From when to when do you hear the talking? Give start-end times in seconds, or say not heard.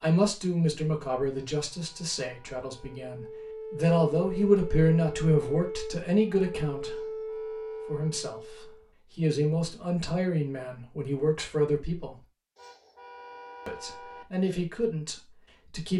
0.0-7.0, 7.8-12.2, 13.7-15.9.